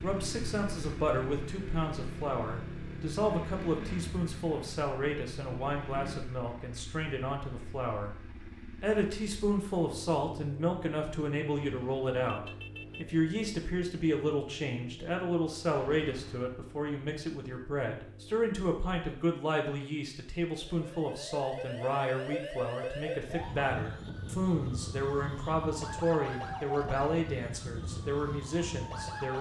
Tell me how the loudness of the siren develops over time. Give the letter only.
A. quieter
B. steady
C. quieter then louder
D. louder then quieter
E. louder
B.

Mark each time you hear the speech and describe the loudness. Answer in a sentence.
You can hear the speech from 0.0 to 29.3 s, at a steady volume.